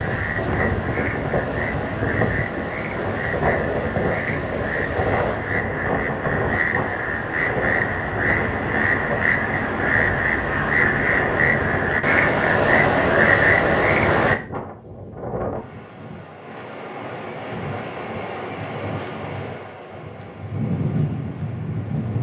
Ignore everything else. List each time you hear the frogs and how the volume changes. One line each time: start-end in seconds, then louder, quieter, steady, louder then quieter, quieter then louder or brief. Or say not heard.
0.0-14.4 louder.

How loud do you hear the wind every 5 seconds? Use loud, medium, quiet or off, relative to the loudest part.
loud, loud, medium, medium, loud.